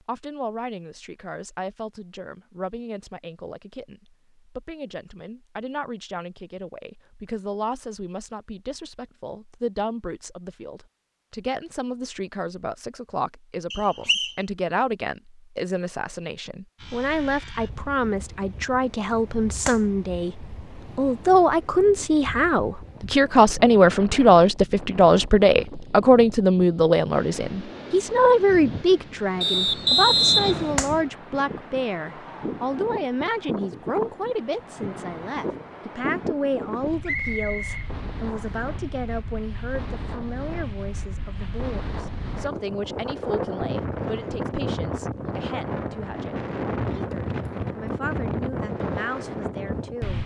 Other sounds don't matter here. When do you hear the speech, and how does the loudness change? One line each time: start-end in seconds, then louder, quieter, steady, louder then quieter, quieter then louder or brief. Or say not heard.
0.0-50.2 louder then quieter.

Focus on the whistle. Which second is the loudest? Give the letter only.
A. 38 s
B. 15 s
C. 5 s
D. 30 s
D.